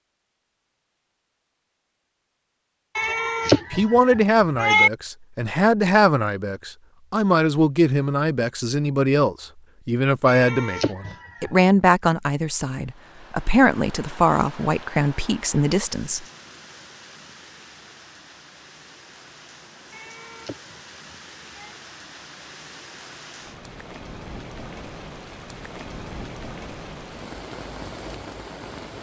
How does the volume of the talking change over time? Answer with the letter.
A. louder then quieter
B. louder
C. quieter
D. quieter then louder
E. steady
E.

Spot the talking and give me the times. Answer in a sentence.
You can hear the talking from 3.7 to 16.2 s.